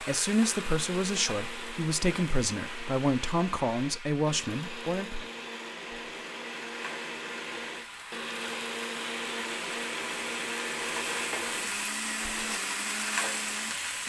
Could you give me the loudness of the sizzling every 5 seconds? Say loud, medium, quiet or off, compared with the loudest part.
medium, medium, loud.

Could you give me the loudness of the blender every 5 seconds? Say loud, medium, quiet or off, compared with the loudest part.
medium, loud, loud.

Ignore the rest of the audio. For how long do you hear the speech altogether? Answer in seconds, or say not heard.
5 s.